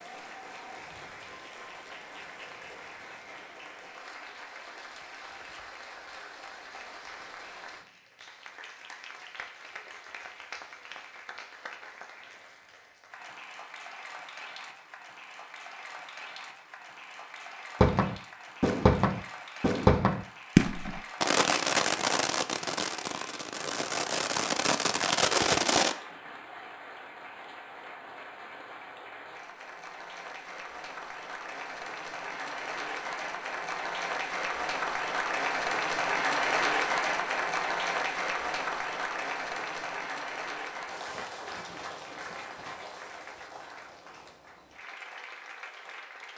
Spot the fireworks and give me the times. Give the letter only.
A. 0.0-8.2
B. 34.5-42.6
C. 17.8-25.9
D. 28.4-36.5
C.